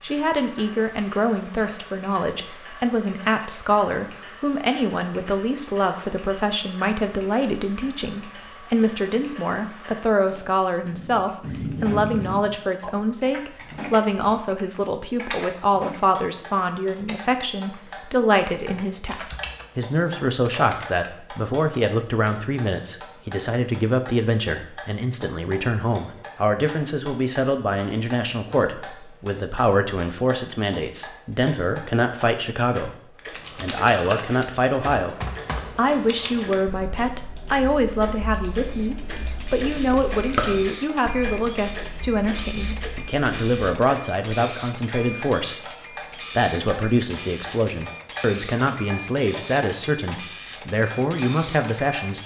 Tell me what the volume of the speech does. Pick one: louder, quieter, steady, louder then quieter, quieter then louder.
steady.